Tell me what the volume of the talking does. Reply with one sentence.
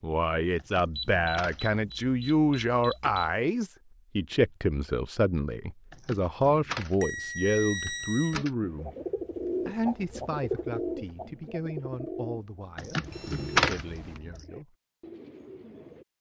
The loudness of the talking goes down.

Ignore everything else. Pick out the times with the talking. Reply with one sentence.
You can hear the talking from 0.0 to 8.9 s and from 9.7 to 14.8 s.